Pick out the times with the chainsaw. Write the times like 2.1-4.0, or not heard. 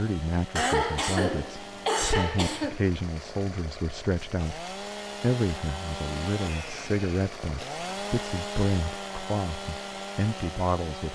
0.0-11.1.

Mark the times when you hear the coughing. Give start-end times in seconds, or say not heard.
0.6-2.8.